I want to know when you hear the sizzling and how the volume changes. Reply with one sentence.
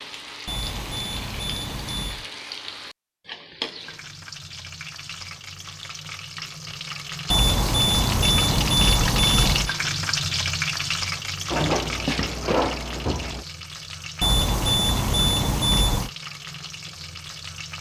You can hear the sizzling from 0.0 to 17.7 s, getting louder then quieter.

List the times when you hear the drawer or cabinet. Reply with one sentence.
The drawer or cabinet can be heard from 11.5 to 13.4 s.